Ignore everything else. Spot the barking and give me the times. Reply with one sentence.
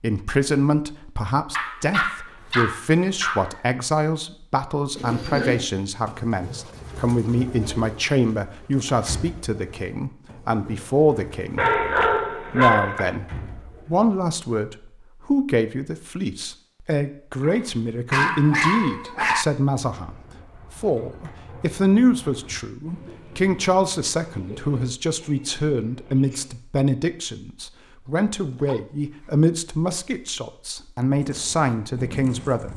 The barking can be heard from 1.5 to 3.6 s, from 11.6 to 13.2 s, from 17.4 to 19.4 s and from 28.1 to 29.5 s.